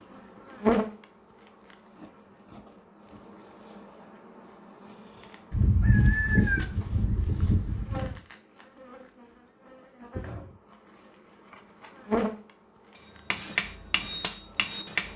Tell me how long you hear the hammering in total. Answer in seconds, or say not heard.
2 s.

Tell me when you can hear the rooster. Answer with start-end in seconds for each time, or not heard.
5.5-8.2.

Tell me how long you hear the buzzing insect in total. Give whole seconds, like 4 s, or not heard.
15 s.